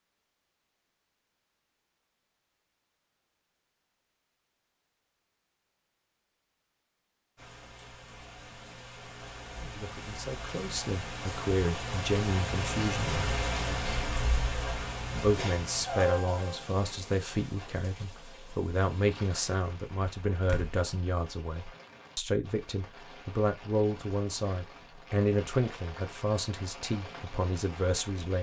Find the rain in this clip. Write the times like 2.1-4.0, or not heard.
7.3-28.3.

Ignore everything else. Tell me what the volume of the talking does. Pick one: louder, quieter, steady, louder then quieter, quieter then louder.
steady.